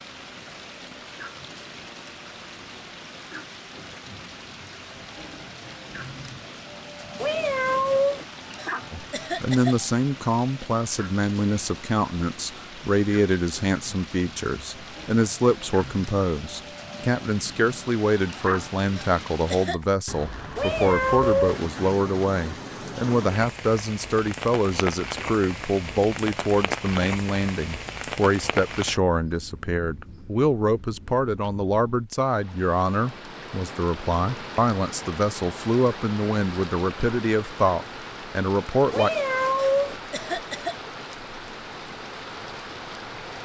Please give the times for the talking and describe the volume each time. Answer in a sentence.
You can hear the talking from 8.9 to 39.1 s, at a steady volume.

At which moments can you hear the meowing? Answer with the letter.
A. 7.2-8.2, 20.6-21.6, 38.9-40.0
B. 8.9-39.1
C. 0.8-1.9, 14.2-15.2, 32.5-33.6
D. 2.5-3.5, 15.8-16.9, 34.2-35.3
A.